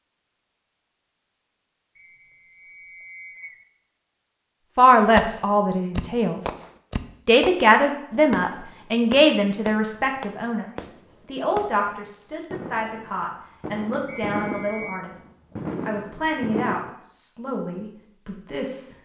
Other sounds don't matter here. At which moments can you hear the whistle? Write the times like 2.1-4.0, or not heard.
1.9-3.6, 14.1-15.1.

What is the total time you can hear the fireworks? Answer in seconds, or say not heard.
12 s.